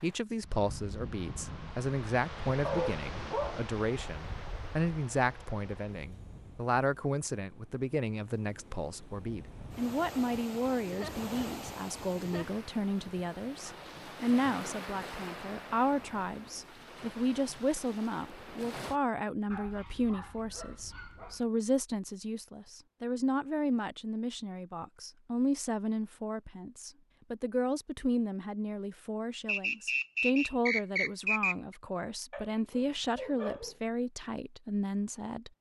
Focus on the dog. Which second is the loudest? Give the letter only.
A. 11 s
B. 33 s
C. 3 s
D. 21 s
C.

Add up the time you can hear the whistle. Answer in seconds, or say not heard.
2 s.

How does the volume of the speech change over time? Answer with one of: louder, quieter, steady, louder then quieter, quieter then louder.
steady.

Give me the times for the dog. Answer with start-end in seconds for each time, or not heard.
2.6-3.6, 19.5-21.4, 32.3-33.8.